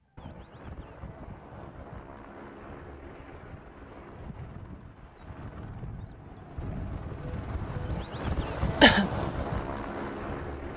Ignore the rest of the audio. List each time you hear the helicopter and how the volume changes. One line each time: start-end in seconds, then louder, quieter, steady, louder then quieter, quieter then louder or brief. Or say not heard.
0.0-10.7 louder.